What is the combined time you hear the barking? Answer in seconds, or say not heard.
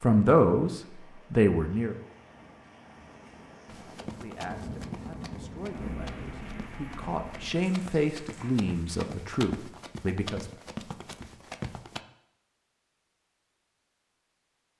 not heard.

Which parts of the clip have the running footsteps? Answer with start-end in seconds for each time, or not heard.
3.6-12.1.